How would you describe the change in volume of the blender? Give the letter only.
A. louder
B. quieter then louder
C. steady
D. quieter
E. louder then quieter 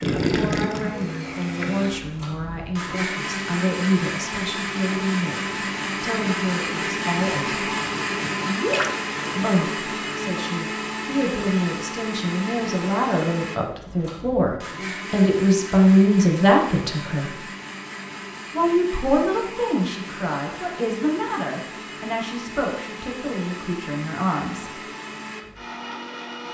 D.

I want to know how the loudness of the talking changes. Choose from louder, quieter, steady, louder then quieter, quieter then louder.
louder then quieter.